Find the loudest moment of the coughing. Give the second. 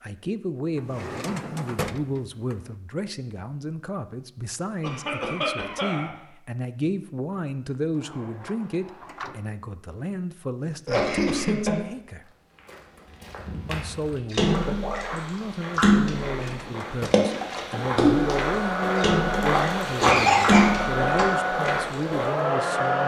20 s.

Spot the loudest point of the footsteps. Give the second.
20 s.